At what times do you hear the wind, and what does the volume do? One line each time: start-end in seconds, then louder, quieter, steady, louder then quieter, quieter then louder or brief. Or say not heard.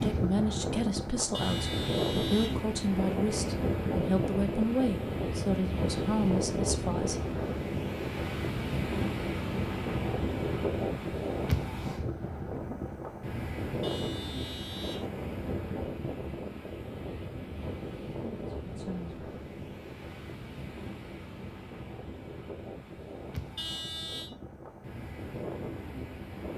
0.0-26.5 quieter.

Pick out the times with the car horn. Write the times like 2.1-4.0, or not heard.
1.3-2.6, 13.8-15.1, 23.6-24.3.